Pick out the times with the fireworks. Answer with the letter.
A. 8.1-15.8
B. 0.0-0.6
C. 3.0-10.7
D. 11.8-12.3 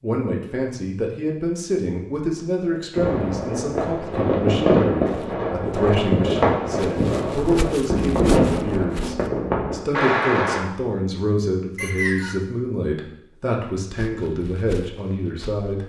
C.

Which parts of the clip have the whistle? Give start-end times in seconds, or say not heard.
11.8-12.3.